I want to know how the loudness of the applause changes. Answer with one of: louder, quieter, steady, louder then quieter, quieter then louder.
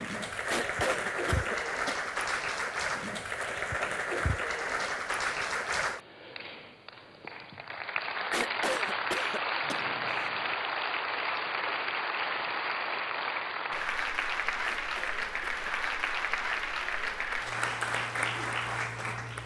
steady.